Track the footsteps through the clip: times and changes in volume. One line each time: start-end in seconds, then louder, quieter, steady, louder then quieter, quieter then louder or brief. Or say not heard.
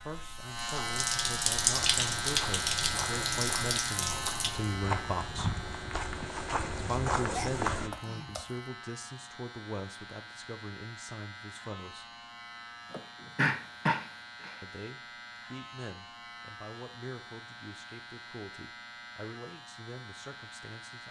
1.7-7.9 louder.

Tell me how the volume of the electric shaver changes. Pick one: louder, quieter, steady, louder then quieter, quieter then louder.
quieter.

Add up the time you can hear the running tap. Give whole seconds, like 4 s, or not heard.
5 s.